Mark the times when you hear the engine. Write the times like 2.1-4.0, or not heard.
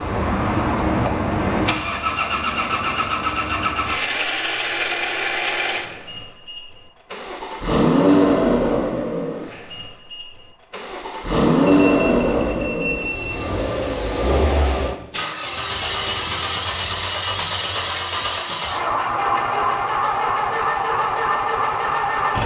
0.0-22.4.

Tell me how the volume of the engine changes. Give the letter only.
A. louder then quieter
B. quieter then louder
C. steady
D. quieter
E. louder
C.